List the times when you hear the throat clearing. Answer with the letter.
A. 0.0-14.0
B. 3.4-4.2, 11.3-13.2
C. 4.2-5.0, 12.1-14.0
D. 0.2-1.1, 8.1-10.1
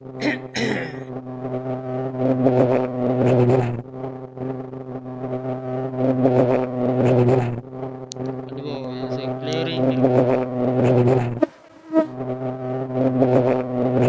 D.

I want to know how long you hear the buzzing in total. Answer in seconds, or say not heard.
14 s.